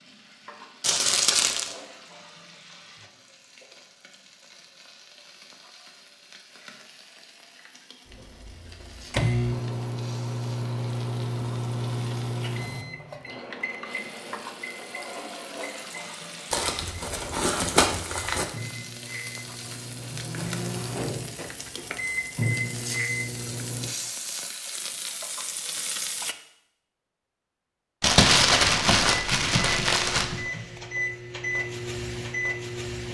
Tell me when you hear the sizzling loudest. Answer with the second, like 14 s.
26 s.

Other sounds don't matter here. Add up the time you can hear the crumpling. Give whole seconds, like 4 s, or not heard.
5 s.